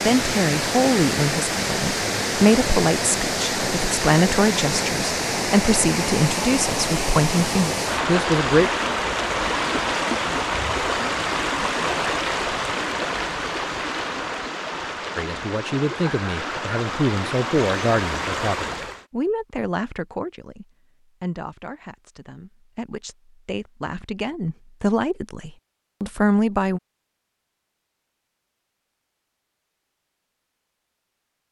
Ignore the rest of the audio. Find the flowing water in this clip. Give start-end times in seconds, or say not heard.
0.0-19.1.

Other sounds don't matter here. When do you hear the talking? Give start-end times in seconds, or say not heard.
0.0-8.7, 15.2-26.8.